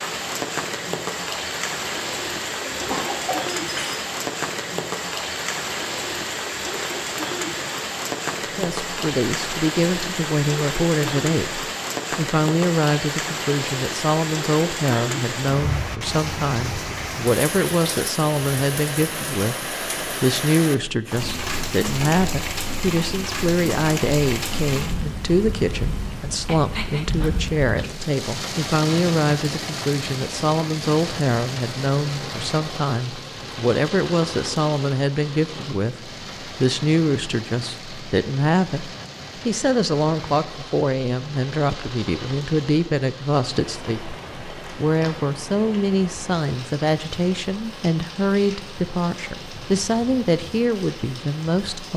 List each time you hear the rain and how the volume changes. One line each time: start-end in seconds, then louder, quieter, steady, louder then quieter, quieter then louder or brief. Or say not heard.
0.0-51.9 quieter.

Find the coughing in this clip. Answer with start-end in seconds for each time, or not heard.
2.6-4.0.